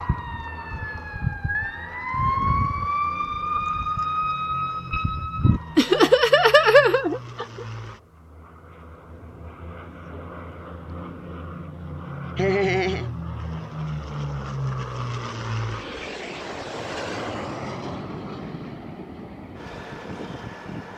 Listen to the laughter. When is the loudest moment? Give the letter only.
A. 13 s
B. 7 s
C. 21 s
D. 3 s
B.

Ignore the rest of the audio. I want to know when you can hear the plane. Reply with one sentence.
The plane can be heard from 0.0 to 20.9 s.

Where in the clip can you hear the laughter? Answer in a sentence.
The laughter can be heard from 5.8 to 7.7 s and from 12.3 to 13.1 s.